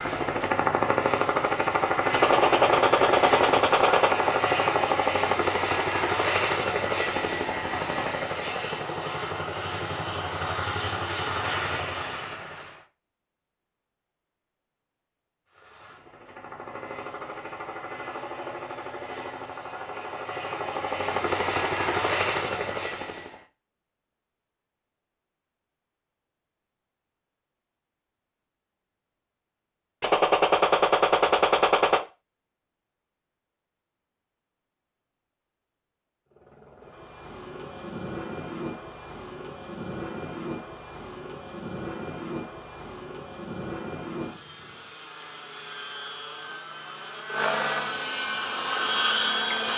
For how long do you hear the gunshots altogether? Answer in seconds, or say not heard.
4 s.